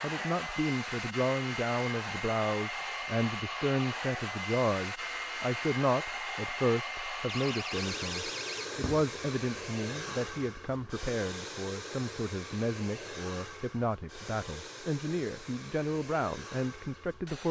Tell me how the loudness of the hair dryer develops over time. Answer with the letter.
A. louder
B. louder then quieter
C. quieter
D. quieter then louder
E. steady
C.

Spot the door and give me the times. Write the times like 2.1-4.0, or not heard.
7.2-9.1.